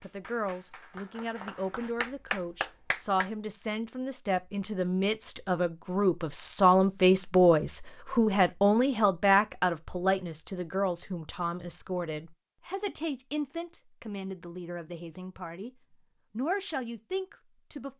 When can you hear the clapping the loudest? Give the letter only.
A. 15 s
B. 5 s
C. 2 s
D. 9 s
C.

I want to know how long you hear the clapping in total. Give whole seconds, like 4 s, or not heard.
3 s.